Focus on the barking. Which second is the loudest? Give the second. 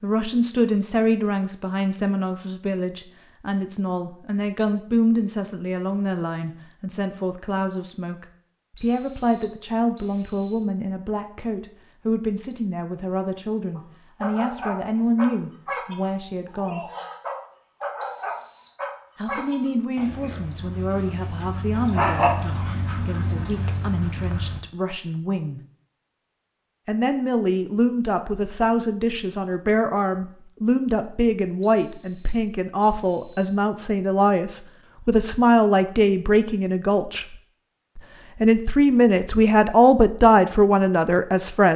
22 s.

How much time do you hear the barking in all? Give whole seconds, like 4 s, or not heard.
11 s.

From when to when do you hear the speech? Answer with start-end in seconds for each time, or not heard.
0.0-16.8, 19.1-25.6, 26.9-37.4, 38.0-41.7.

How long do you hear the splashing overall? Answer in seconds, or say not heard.
not heard.